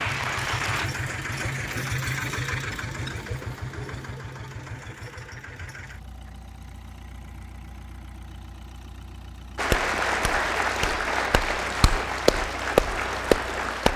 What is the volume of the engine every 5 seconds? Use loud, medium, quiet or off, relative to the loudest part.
loud, quiet, quiet.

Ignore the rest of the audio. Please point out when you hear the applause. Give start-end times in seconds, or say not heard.
0.0-1.8, 9.6-13.9.